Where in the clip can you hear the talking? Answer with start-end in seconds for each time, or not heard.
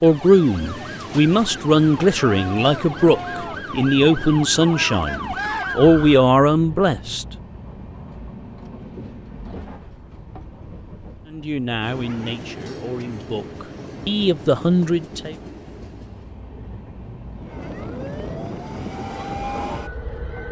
0.0-7.2, 11.2-15.3.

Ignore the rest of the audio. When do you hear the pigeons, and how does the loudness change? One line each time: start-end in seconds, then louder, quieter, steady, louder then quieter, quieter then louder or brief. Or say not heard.
not heard.